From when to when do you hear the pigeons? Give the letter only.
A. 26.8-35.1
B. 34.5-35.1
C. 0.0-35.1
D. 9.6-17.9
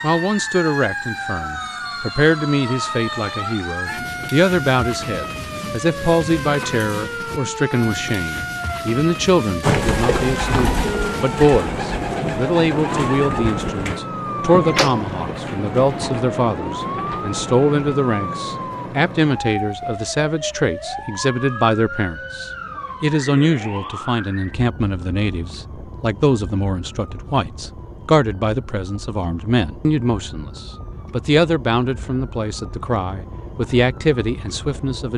D.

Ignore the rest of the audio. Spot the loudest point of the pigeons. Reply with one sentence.
The loudest moment of the pigeons is at 10 seconds.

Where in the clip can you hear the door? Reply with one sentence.
The door can be heard from 14.7 to 15.2 s.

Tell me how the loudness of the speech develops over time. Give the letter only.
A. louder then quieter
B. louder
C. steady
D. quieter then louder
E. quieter
C.